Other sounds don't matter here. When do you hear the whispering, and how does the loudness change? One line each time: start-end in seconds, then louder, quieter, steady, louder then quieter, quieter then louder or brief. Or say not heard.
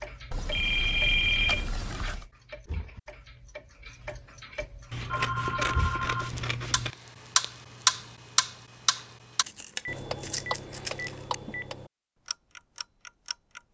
not heard.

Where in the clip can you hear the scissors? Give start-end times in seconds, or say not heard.
0.8-1.9, 4.9-7.0, 9.4-11.3.